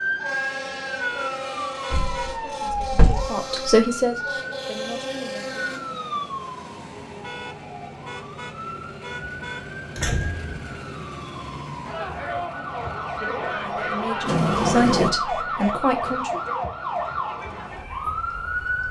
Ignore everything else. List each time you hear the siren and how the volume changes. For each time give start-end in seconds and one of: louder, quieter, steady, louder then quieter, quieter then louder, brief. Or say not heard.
0.0-18.8 quieter then louder.